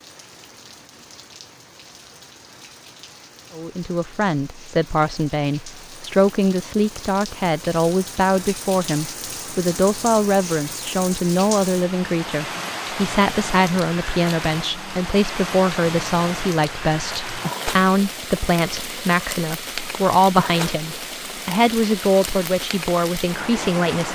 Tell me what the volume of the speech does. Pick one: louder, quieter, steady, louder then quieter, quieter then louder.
steady.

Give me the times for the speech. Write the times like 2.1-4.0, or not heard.
3.5-24.0.